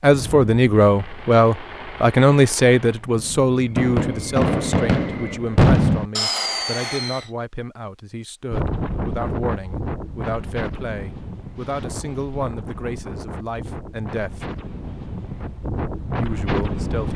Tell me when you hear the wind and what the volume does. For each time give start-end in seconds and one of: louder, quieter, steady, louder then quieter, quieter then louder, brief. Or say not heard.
8.5-17.1 quieter then louder.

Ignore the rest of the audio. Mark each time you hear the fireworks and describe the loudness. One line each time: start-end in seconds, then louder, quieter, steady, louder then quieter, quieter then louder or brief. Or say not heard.
0.0-7.3 louder.